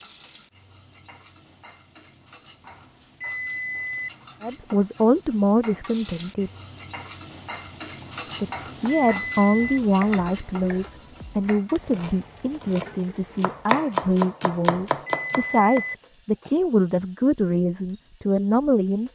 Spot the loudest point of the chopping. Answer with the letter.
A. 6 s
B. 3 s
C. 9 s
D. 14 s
D.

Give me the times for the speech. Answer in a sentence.
The speech can be heard from 4.4 to 6.5 s and from 8.4 to 19.0 s.